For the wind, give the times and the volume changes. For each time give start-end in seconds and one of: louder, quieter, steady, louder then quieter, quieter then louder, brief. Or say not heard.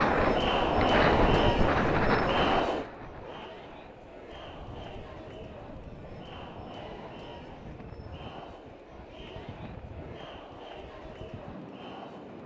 0.0-12.4 quieter.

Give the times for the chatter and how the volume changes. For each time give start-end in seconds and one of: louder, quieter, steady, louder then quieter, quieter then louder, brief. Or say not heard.
0.0-12.4 quieter.